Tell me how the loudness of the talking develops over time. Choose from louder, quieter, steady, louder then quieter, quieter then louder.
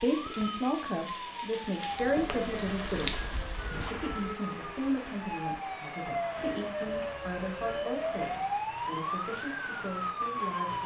quieter.